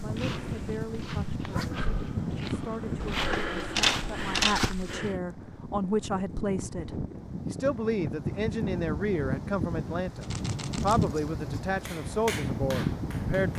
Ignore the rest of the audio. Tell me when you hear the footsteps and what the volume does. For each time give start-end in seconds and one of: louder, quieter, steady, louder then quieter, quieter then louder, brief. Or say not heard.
0.0-5.2 louder.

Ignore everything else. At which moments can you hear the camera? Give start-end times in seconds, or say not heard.
3.0-4.7, 10.2-11.1.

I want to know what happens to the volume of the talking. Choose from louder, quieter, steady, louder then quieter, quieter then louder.
louder.